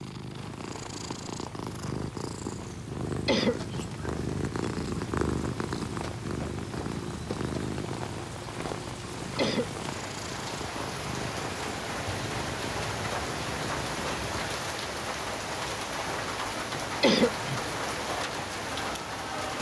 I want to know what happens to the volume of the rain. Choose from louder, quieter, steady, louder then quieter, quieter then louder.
louder.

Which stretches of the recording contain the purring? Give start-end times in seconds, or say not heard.
0.0-14.4.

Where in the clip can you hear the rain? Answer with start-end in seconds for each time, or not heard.
0.2-19.5.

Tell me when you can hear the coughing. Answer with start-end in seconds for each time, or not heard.
3.2-3.9, 9.3-9.8, 17.0-17.6.